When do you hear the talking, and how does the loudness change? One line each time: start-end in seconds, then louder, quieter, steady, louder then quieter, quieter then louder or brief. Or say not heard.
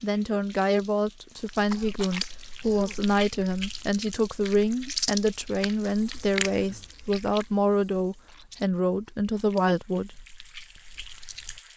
0.0-10.2 steady.